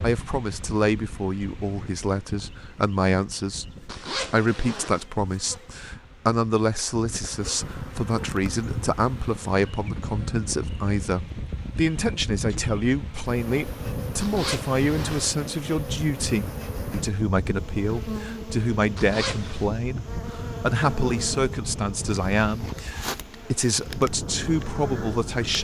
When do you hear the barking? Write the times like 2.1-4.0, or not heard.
not heard.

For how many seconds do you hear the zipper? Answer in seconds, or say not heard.
3 s.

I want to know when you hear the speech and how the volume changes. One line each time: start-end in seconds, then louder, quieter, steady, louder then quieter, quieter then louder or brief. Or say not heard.
0.0-25.5 steady.